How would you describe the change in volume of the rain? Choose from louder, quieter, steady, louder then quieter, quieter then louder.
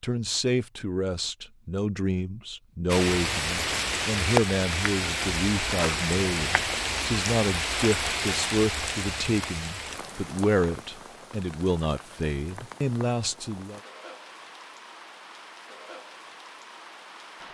quieter.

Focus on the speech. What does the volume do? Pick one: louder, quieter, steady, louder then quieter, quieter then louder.
steady.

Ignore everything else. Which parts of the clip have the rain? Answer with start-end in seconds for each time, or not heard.
2.9-17.4.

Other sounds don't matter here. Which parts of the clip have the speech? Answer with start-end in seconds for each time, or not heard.
0.0-13.8.